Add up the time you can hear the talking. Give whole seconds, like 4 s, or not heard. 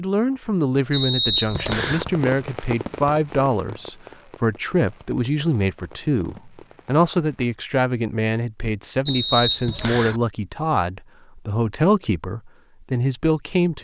14 s.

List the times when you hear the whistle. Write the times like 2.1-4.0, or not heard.
0.9-2.0, 9.1-10.2.